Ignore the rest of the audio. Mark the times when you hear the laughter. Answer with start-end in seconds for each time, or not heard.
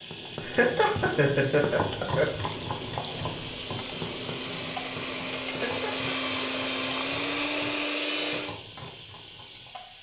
0.4-2.2, 5.5-6.2.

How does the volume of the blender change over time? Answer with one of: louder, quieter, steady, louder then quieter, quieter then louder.
louder.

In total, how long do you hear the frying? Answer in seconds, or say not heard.
10 s.